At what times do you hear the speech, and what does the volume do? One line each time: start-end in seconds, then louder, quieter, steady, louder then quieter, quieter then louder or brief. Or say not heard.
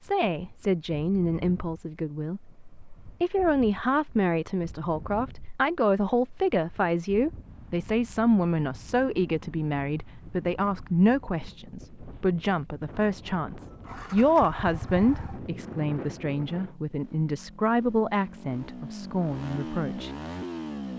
0.0-20.1 steady.